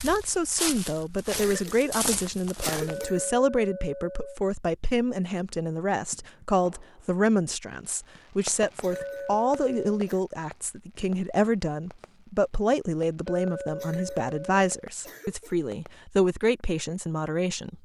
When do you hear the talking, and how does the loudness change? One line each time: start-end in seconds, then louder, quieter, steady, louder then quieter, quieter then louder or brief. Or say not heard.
0.0-17.8 steady.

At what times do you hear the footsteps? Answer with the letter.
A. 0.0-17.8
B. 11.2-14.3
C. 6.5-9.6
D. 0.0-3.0
D.